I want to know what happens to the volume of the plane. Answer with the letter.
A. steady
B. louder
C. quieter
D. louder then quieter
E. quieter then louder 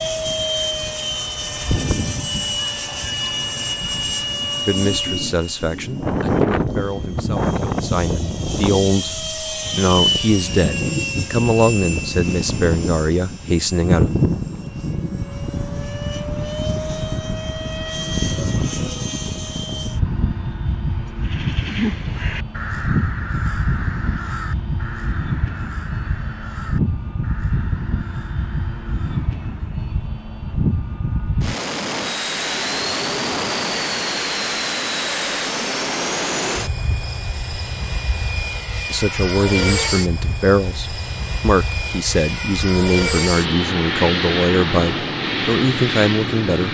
A.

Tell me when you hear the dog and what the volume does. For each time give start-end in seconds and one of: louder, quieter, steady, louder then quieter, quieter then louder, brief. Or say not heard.
not heard.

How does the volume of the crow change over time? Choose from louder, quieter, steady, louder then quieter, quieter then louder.
quieter.